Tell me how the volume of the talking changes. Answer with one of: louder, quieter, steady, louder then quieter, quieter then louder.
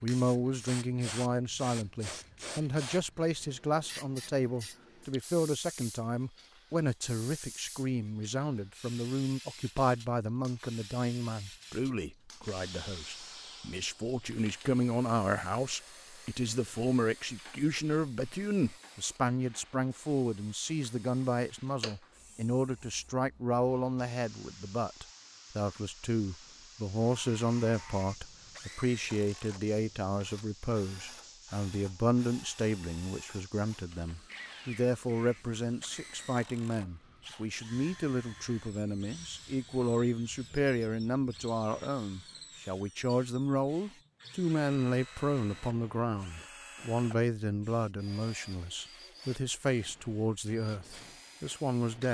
steady.